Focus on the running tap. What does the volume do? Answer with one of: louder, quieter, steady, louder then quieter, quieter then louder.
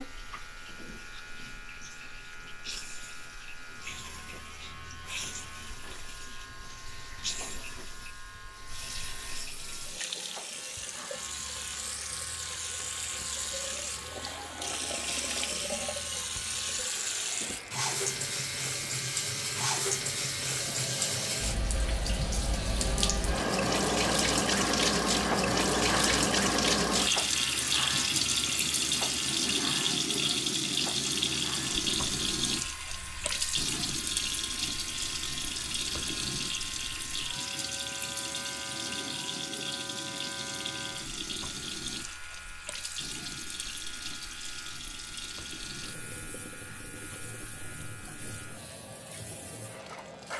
louder then quieter.